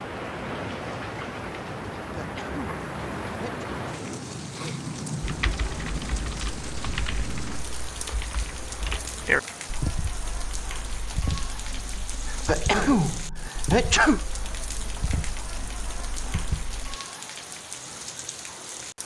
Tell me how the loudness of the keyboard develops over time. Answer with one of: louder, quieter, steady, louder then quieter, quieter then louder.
louder then quieter.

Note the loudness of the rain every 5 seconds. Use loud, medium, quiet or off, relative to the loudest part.
loud, loud, medium, medium.